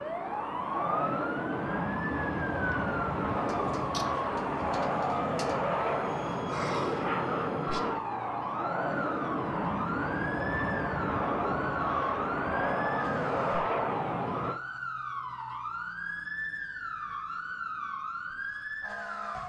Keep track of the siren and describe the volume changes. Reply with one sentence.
The loudness of the siren stays about the same.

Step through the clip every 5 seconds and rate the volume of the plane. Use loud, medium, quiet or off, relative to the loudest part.
loud, loud, loud, off.